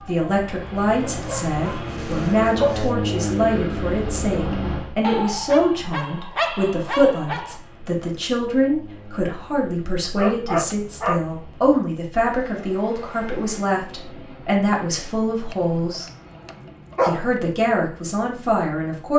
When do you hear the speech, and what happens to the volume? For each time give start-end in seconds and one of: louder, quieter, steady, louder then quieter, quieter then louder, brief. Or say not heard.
0.0-16.1 steady
17.1-19.1 brief.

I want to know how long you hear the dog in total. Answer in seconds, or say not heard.
7 s.